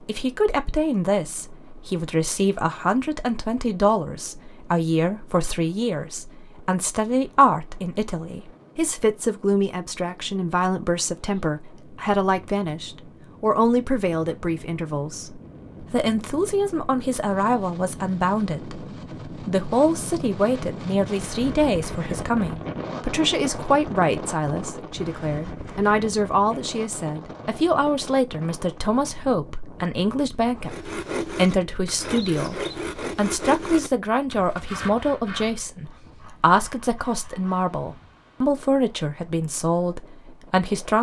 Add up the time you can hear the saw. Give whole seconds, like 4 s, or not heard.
7 s.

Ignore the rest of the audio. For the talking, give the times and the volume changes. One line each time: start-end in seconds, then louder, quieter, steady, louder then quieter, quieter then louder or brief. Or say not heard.
0.0-40.9 steady.